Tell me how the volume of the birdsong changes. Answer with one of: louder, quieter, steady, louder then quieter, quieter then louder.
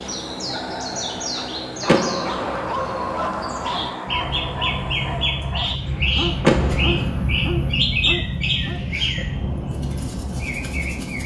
louder then quieter.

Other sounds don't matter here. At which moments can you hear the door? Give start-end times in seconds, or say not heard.
1.9-2.6, 6.4-7.2.